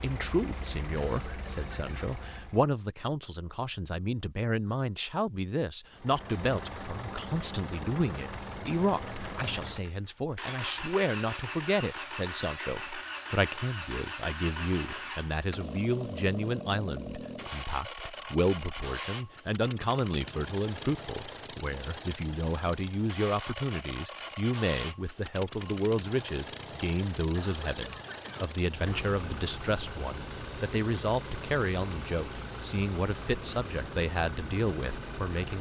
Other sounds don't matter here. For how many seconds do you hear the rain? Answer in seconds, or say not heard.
not heard.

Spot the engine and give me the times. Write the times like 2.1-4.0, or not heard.
0.0-2.8, 5.9-35.5.